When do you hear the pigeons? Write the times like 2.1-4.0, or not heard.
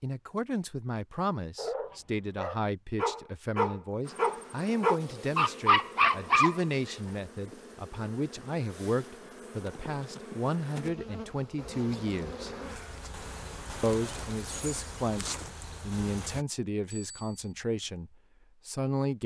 not heard.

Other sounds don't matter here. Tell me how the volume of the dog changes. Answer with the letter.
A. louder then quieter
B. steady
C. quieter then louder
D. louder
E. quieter
D.